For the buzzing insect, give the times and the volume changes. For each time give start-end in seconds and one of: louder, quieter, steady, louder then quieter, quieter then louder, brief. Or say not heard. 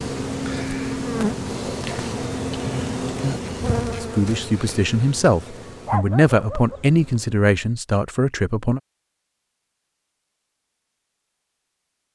0.0-7.4 quieter.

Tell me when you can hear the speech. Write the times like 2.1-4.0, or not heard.
4.0-8.8.